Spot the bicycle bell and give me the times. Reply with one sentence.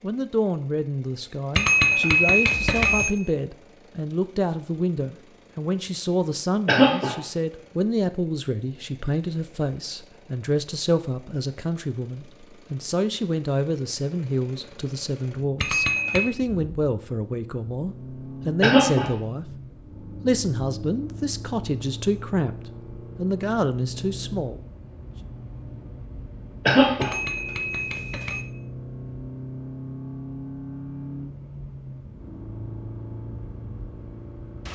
You can hear the bicycle bell from 1.6 to 3.1 s, from 15.6 to 16.3 s and from 27.0 to 28.4 s.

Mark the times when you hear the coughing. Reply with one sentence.
You can hear the coughing from 6.7 to 7.2 s, from 18.6 to 19.1 s and from 26.6 to 27.1 s.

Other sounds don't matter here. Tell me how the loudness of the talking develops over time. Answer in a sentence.
The loudness of the talking stays about the same.